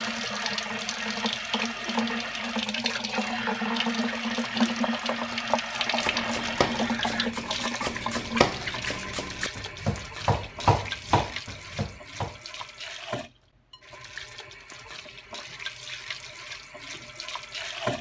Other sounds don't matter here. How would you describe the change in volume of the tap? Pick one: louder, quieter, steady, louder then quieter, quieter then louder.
quieter.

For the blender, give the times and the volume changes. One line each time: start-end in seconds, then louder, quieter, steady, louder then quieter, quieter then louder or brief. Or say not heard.
not heard.